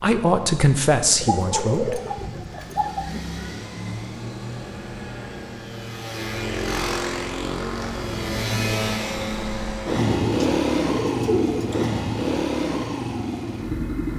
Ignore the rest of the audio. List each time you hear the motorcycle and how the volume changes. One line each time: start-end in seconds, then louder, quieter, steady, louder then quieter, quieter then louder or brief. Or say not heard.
0.2-14.1 louder.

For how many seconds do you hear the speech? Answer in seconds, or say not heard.
2 s.